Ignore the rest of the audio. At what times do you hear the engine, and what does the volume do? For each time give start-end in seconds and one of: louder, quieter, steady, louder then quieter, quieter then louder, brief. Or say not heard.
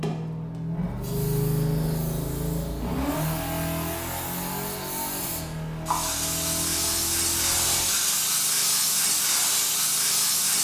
0.0-7.8 quieter.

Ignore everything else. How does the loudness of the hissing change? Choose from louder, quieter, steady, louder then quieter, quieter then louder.
louder.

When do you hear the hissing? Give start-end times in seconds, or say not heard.
0.0-10.5.